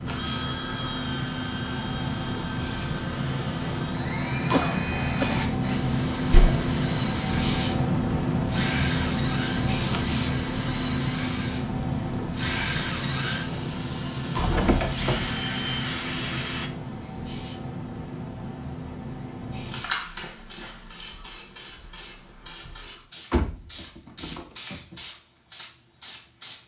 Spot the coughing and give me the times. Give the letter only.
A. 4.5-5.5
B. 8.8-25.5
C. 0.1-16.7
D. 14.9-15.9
A.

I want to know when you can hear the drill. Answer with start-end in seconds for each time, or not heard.
0.1-16.7.